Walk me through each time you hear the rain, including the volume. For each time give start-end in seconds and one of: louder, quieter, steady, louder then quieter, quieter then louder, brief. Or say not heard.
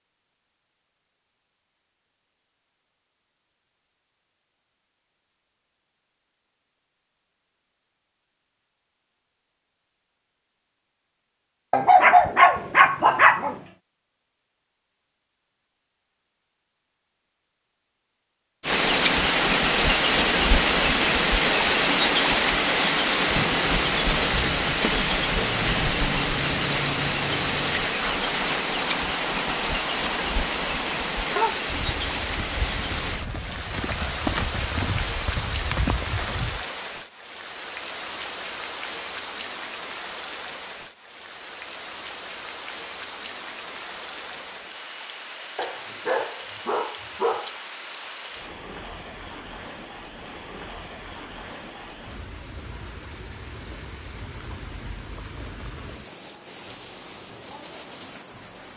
18.6-58.7 quieter.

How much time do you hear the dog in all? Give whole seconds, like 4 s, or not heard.
4 s.